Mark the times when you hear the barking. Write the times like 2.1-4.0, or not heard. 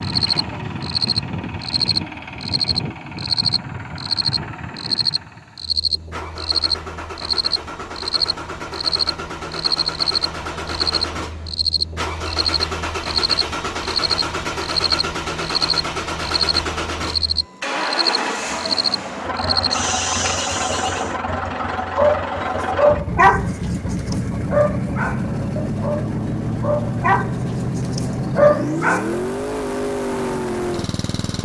21.9-29.1.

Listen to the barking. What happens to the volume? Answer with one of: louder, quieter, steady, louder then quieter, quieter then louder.
quieter then louder.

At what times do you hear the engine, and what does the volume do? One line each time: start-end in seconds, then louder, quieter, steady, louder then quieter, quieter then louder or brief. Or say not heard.
0.0-31.4 louder.